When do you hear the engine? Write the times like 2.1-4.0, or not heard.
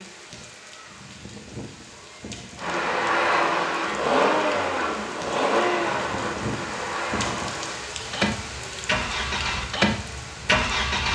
2.6-11.0.